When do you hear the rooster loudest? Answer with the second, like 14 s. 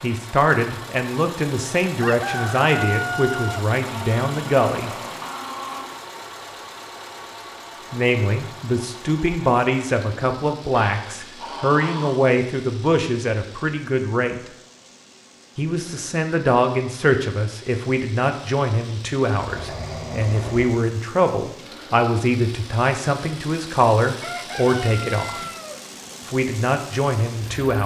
3 s.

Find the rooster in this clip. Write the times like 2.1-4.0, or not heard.
2.0-3.7, 24.2-25.9.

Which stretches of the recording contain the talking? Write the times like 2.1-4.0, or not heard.
0.0-4.9, 7.9-14.4, 15.6-25.4, 26.2-27.8.